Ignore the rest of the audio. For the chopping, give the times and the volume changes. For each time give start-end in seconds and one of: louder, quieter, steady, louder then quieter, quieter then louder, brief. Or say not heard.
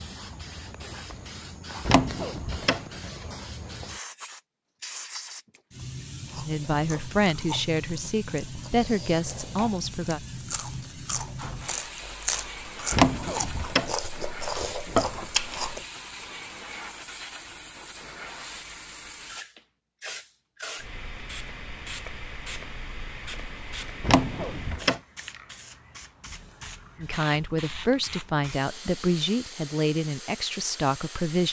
not heard.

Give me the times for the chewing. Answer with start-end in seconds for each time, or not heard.
6.2-15.8.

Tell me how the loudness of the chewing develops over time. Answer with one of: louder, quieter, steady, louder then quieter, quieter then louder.
louder.